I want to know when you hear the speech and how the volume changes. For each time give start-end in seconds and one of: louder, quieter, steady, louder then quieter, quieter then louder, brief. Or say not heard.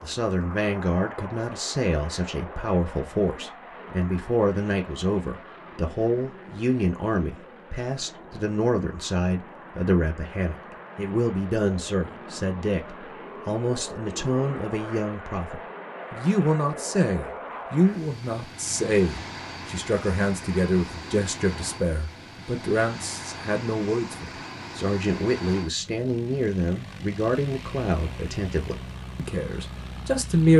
0.0-30.5 steady.